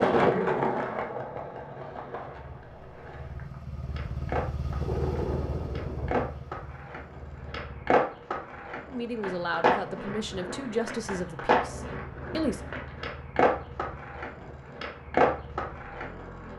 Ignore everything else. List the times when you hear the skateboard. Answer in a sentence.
The skateboard can be heard from 0.0 to 16.5 s.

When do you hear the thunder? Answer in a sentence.
The thunder can be heard from 4.8 to 6.3 s.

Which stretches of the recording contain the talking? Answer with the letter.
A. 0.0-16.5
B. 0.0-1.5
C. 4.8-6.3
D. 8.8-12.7
D.